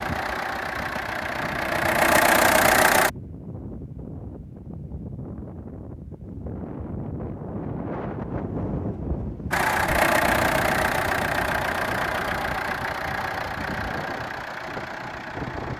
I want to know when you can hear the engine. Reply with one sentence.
The engine can be heard from 0.0 to 3.1 s and from 9.5 to 15.7 s.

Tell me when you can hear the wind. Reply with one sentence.
The wind can be heard from 0.0 to 15.7 s.